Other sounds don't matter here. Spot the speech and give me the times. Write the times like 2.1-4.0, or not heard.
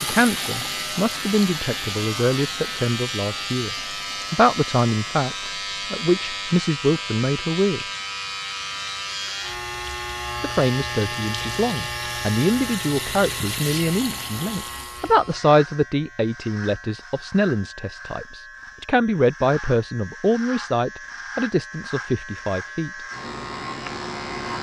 0.0-7.8, 10.4-22.9.